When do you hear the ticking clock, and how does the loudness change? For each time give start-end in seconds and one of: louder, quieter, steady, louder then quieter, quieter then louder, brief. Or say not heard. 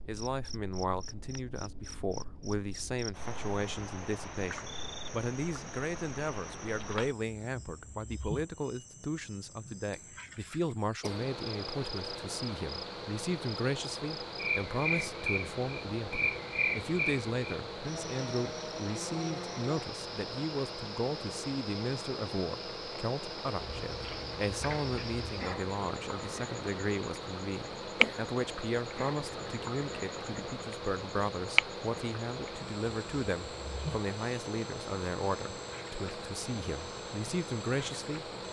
not heard.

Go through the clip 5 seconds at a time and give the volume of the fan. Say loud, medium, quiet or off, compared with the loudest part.
off, off, loud, loud, loud, loud, loud, loud.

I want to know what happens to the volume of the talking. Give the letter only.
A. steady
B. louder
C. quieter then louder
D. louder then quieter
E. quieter
A.